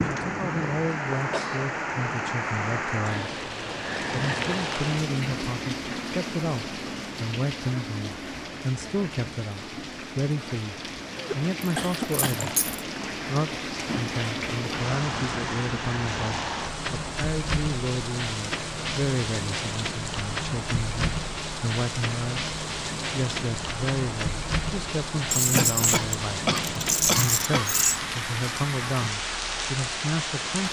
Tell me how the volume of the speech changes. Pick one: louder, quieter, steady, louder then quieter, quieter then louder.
steady.